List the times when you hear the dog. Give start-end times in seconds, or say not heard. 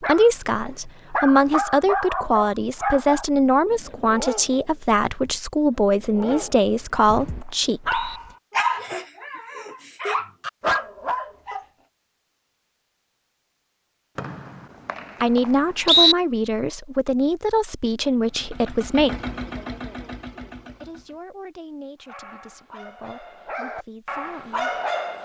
0.0-11.7, 22.1-25.2.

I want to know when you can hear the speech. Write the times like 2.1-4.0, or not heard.
0.0-8.1, 15.2-19.3, 20.8-24.8.